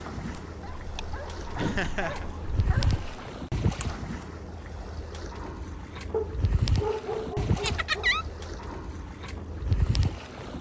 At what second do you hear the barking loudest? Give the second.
7 s.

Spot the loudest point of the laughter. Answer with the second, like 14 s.
8 s.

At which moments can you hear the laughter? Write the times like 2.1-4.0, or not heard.
1.6-2.2, 7.6-8.2.